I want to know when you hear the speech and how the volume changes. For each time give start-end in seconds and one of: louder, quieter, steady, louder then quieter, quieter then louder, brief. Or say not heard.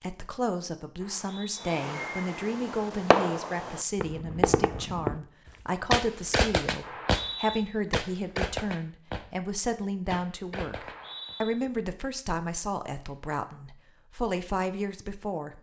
0.0-15.5 steady.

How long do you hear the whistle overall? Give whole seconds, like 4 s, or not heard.
2 s.